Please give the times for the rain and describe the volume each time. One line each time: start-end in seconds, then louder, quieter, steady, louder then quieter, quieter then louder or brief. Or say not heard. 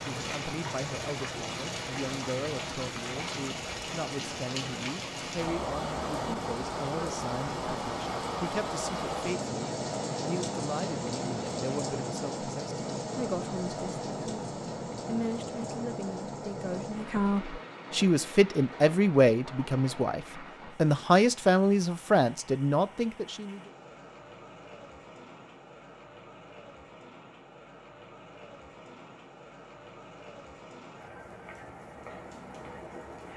0.0-33.3 quieter.